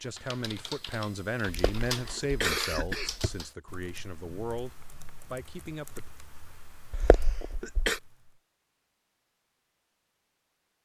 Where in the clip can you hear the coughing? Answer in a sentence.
You can hear the coughing from 1.4 to 3.3 s and from 6.9 to 8.0 s.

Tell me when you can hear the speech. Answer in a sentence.
You can hear the speech from 0.0 to 6.1 s.